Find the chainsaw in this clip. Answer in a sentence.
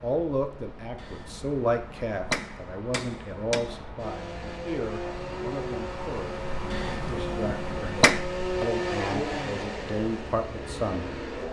You can hear the chainsaw from 4.0 to 11.4 s.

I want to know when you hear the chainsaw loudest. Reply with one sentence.
The loudest moment of the chainsaw is at 9 seconds.